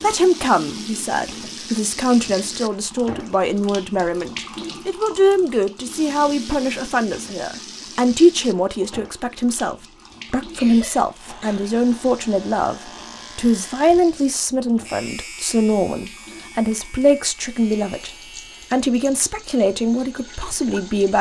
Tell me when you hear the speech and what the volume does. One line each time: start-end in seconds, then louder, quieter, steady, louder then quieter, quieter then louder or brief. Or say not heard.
0.0-21.1 steady.